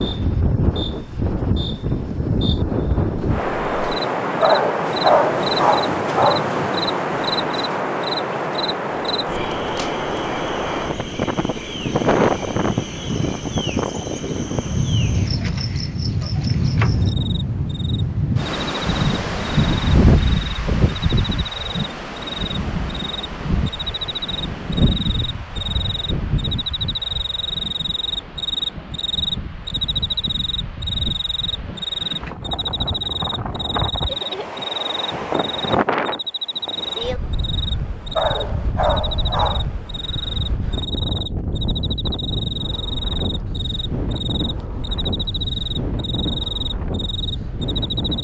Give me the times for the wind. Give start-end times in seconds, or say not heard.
0.0-48.1.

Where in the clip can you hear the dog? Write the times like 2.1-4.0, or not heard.
4.4-6.4, 38.1-39.6.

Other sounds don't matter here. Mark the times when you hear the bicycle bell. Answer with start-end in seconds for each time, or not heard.
not heard.